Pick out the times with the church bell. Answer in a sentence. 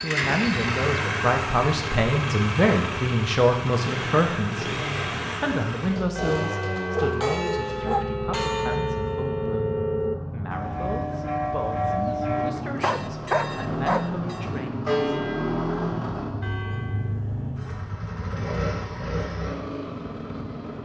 You can hear the church bell from 6.0 to 17.2 s.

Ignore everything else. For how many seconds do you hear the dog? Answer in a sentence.
The dog can be heard for 3 seconds in total.